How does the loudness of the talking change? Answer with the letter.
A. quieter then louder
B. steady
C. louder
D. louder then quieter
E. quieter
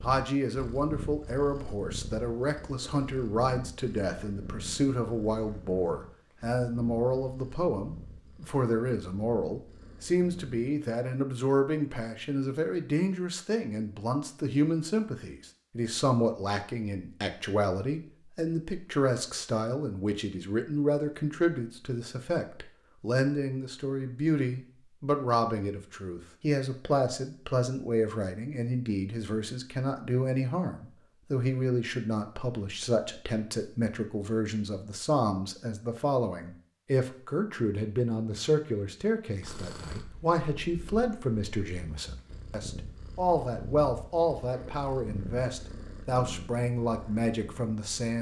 B.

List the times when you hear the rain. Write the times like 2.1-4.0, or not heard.
not heard.